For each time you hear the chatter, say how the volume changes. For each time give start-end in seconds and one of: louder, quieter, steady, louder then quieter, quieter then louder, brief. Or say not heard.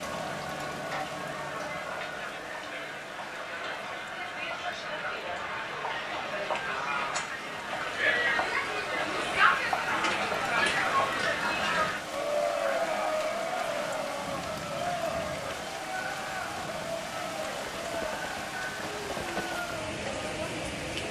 0.0-21.0 louder then quieter.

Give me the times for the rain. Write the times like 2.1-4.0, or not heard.
0.0-21.0.